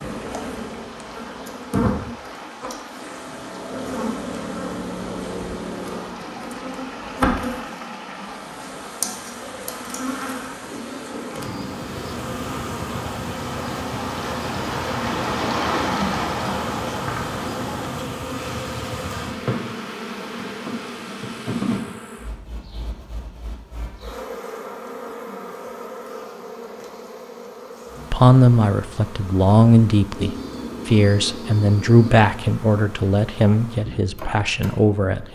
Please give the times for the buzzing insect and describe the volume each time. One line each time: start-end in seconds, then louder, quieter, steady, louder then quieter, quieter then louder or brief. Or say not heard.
0.0-35.3 quieter.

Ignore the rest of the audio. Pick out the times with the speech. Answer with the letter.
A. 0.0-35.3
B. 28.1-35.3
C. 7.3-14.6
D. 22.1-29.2
B.